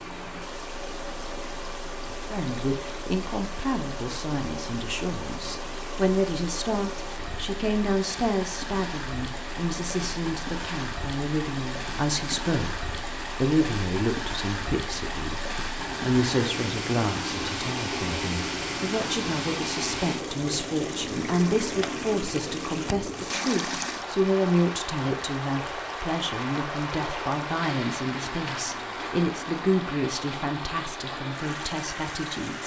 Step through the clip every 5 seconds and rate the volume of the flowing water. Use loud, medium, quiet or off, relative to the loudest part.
medium, medium, loud, loud, loud, loud, medium.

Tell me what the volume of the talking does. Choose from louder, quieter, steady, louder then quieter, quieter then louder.
steady.